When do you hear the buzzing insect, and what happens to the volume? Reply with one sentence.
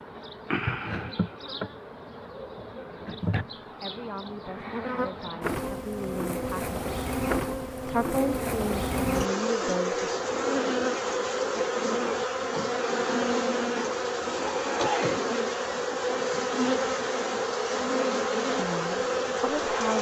You can hear the buzzing insect from 0.0 to 19.9 s, getting louder.